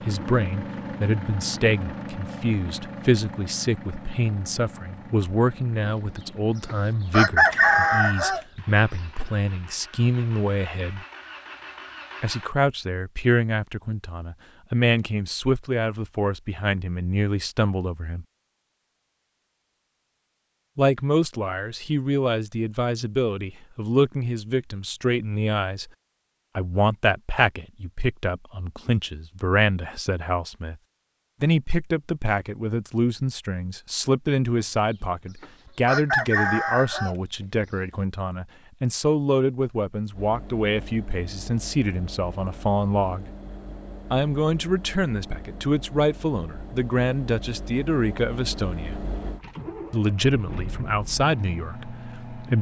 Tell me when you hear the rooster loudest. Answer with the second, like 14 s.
8 s.